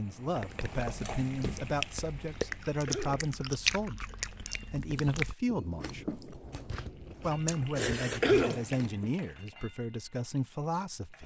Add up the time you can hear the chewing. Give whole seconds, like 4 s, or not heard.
9 s.